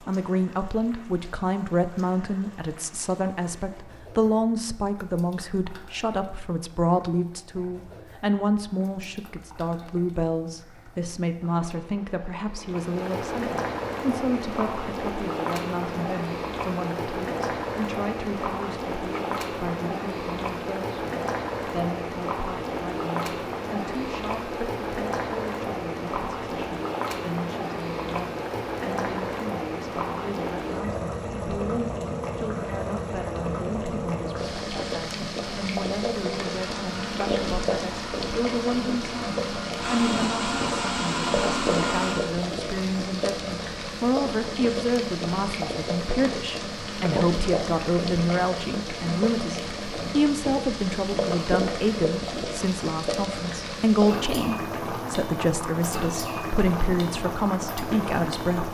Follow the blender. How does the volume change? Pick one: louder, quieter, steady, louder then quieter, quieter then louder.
louder.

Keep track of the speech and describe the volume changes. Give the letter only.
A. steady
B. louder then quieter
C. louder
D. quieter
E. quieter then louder
E.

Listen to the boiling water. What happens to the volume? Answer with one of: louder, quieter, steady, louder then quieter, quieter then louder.
louder.